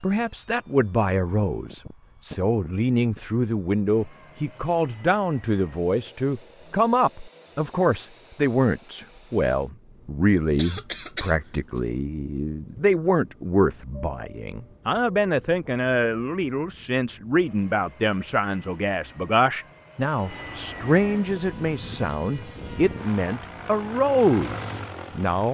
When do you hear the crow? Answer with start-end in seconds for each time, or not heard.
not heard.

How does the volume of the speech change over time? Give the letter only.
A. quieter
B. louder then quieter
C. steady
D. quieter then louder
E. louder
C.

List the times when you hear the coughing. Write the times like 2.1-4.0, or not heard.
10.3-11.9.